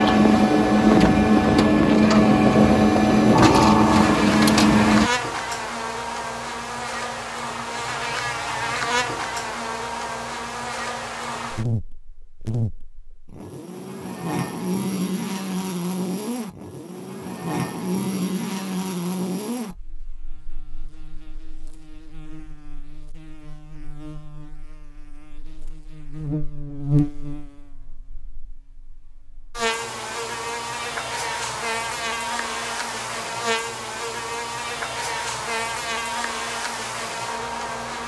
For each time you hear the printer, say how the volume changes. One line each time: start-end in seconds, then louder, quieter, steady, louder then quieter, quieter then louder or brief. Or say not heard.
0.0-5.1 steady.